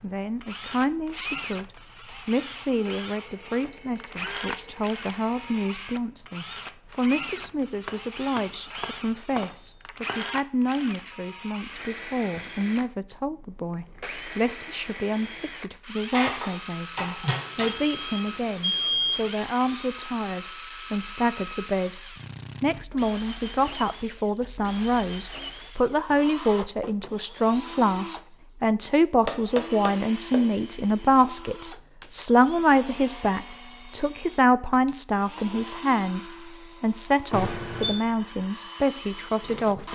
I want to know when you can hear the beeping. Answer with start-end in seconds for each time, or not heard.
3.0-5.8, 17.2-19.3, 37.3-38.0.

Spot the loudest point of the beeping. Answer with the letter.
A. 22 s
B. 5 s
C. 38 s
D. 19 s
D.